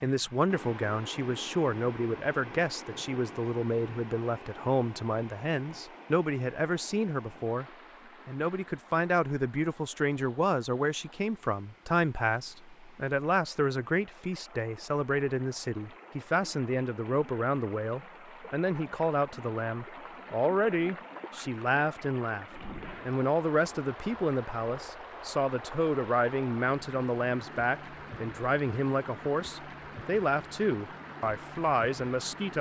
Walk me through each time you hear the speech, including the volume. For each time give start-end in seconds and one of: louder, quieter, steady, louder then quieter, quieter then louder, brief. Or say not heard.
0.0-7.7 steady
8.2-32.5 steady.